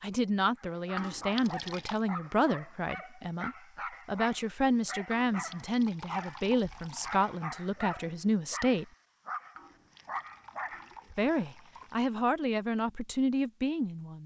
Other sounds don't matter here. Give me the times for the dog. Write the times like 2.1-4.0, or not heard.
0.6-11.8.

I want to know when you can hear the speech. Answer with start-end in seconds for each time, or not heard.
0.0-8.8, 11.2-14.2.